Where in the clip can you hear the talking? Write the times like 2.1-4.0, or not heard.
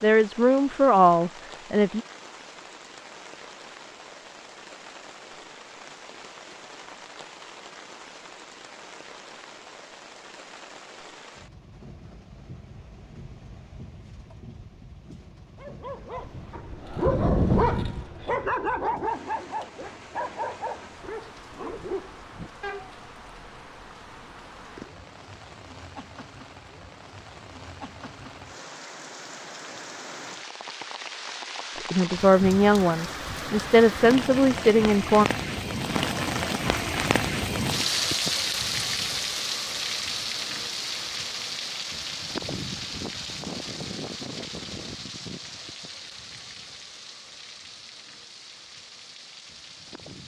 0.0-2.0, 31.9-35.2.